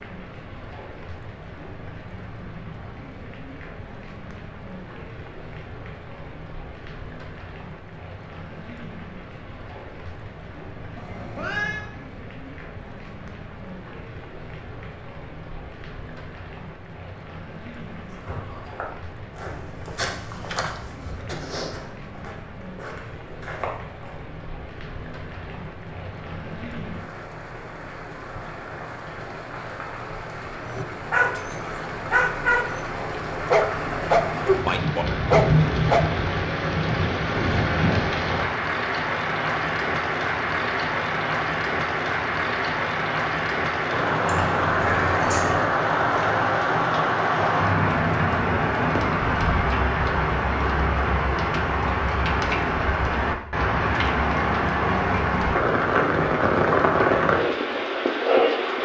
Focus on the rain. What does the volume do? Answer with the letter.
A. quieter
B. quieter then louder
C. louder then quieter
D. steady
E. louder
E.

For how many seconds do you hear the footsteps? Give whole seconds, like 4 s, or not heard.
6 s.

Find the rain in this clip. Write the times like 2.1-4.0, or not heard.
0.0-58.7.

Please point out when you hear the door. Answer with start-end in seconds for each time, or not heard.
not heard.